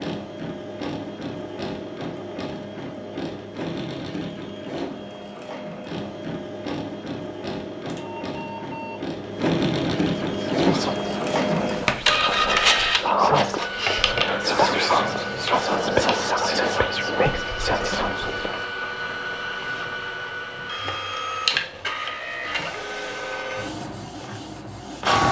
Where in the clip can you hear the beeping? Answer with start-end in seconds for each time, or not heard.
7.8-9.0.